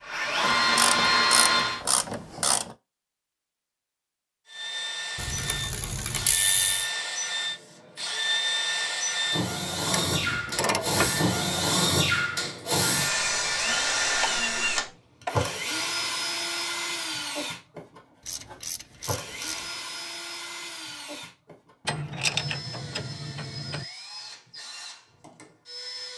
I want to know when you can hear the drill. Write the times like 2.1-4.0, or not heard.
0.0-1.8, 4.5-26.1.